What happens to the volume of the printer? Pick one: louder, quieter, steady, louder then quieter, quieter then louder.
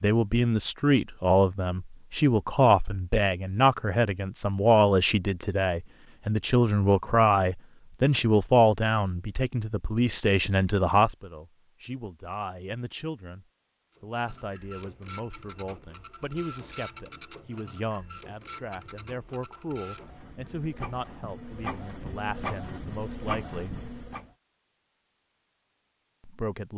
louder.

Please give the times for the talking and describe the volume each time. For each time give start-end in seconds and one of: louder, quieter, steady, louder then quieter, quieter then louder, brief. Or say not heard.
0.0-23.8 quieter
26.2-26.7 brief.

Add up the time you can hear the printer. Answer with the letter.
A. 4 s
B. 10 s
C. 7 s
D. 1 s
B.